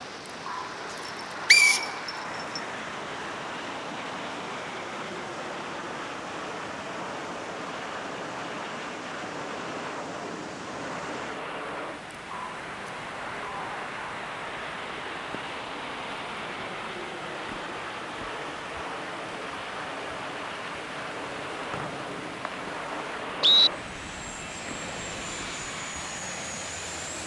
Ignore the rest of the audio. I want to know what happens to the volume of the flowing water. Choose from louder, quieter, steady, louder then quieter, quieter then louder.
steady.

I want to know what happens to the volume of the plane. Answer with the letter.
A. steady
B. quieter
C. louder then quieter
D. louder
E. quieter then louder
A.